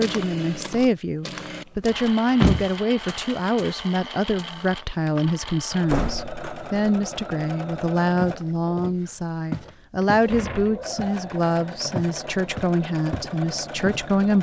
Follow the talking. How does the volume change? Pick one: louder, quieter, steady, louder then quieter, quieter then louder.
steady.